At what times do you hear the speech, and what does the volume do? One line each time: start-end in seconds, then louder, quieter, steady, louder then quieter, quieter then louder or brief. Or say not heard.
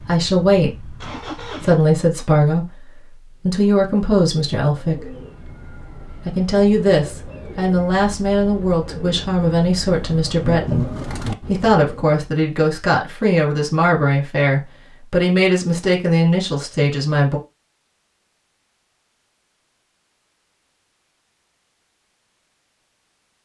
0.1-5.2 steady
6.2-17.4 steady.